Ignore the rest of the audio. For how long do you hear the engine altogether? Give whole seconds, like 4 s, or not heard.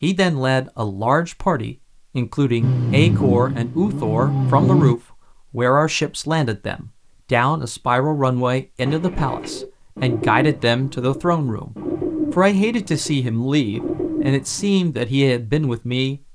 2 s.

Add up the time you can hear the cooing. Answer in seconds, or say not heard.
6 s.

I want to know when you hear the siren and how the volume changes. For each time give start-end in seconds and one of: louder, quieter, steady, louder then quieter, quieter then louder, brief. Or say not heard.
not heard.